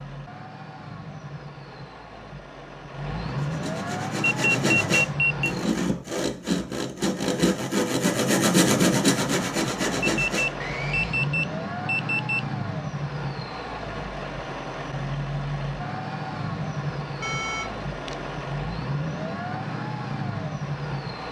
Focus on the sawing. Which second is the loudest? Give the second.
9 s.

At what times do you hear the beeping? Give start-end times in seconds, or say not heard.
4.2-5.5, 10.0-12.4, 17.2-18.2.